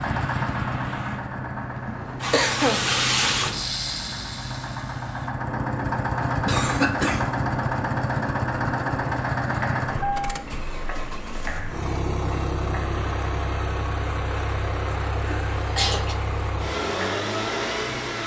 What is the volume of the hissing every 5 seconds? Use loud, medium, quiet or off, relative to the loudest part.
loud, medium, medium, medium.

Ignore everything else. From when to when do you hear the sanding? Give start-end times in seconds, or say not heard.
not heard.